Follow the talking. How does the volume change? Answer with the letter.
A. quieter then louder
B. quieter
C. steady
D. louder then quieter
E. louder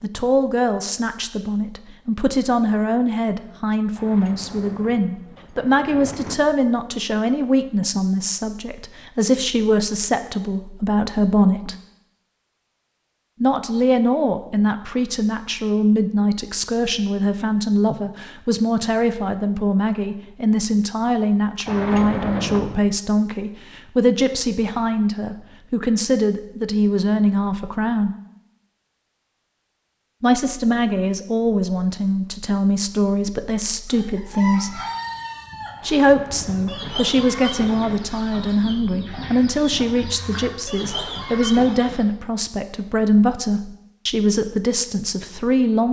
C.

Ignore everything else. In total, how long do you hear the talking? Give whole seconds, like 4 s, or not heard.
41 s.